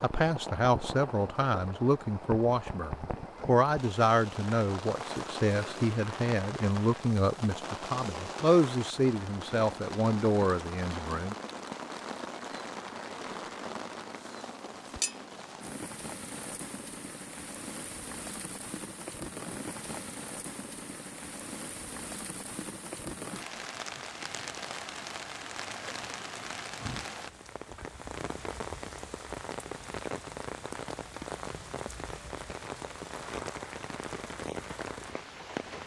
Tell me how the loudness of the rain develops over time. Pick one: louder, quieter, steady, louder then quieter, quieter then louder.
steady.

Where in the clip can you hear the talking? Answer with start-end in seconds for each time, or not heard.
0.0-11.3.